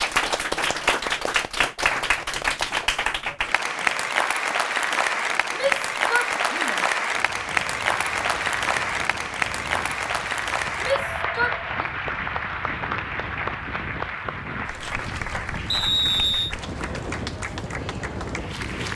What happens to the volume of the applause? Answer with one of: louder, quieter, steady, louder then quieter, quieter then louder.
quieter.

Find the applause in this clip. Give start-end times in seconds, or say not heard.
0.0-18.9.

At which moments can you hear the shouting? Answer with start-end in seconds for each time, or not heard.
5.5-6.8, 10.8-11.9.